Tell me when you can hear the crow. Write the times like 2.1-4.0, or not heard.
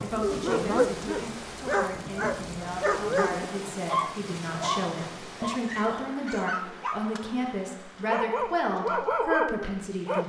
not heard.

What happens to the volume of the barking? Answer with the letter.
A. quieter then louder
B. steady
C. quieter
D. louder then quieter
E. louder
A.